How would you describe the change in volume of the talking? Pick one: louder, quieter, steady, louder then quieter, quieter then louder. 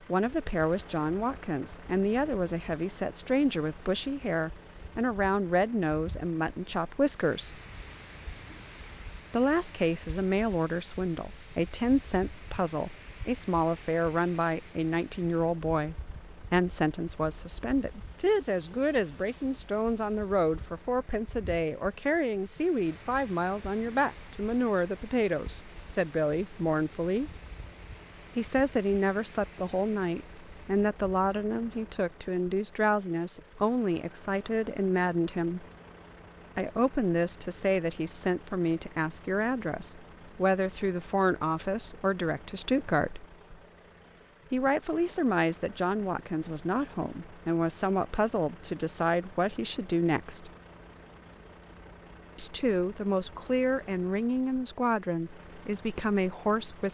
steady.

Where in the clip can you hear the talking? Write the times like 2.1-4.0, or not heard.
0.1-7.6, 9.3-27.4, 28.4-35.6, 36.5-43.2, 44.5-50.5, 52.4-56.8.